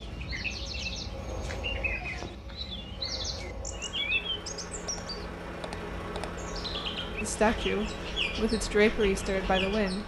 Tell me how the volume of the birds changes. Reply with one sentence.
The loudness of the birds stays about the same.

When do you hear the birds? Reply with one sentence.
The birds can be heard from 0.0 to 10.0 s.